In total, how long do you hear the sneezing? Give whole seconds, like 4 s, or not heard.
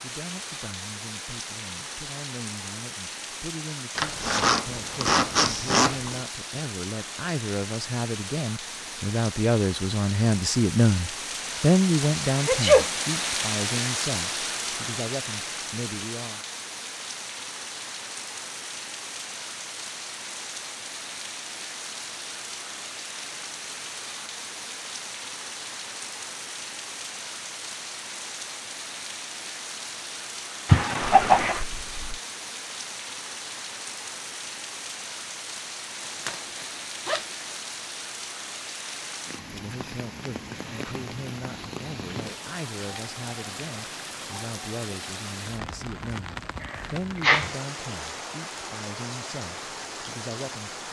2 s.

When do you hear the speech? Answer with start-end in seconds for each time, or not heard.
0.0-16.4, 39.5-50.8.